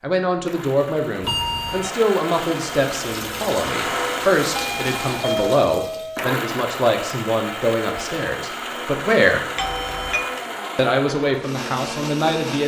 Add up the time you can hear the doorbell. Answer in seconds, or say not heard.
3 s.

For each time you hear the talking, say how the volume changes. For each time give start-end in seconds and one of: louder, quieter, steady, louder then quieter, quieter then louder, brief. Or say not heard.
0.0-9.4 steady
10.8-12.6 brief.